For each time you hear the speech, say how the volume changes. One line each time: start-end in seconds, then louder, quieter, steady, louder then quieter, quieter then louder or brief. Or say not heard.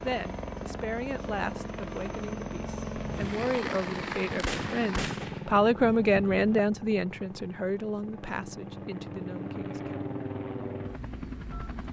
0.0-10.1 louder then quieter.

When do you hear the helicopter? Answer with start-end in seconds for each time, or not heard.
0.0-11.8.